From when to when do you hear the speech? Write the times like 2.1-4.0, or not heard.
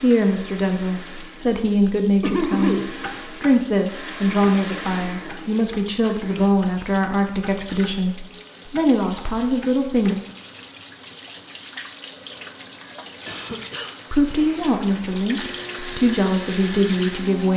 0.0-10.2, 14.1-17.5.